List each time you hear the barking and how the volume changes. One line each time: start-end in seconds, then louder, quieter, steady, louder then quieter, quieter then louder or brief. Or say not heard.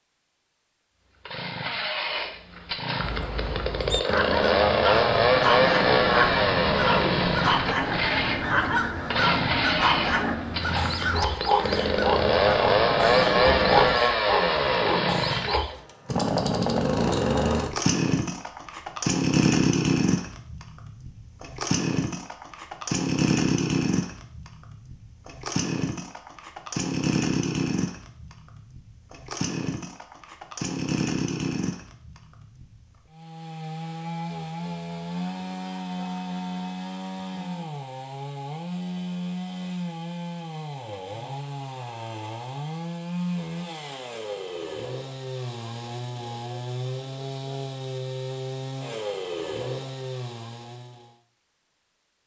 4.0-15.7 steady.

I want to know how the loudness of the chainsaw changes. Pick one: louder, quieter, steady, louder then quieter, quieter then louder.
quieter.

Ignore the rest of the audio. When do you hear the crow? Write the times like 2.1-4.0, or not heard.
3.0-14.0.